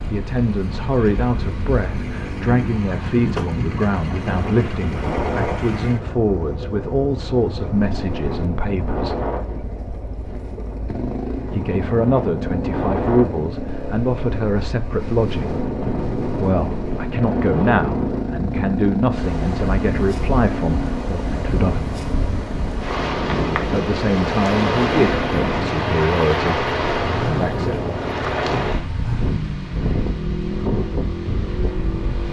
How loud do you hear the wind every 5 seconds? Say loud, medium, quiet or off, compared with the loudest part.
medium, medium, medium, loud, loud, loud, medium.